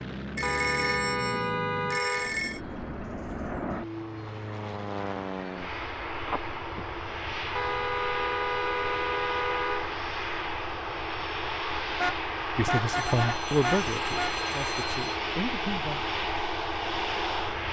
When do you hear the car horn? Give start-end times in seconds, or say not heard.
0.4-2.4, 7.5-9.9, 11.9-14.3.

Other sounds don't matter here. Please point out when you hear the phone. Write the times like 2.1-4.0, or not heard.
0.3-2.6, 6.2-6.8, 12.8-15.2.